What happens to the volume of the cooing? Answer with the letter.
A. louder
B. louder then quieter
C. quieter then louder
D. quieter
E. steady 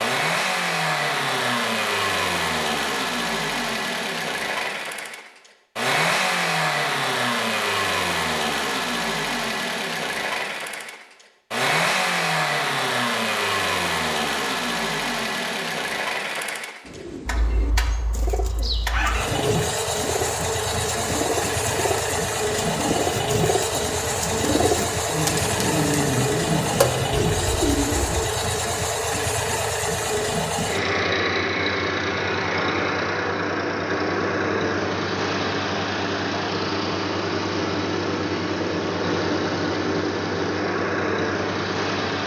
A.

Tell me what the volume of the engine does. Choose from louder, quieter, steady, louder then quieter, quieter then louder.
steady.